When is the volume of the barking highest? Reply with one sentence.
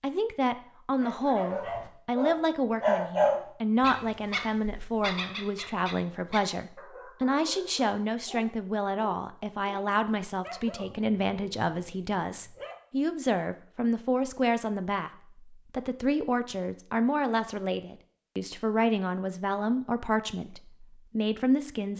The volume of the barking peaks at 3 seconds.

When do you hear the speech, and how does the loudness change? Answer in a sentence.
You can hear the speech from 0.0 to 21.9 s, at a steady volume.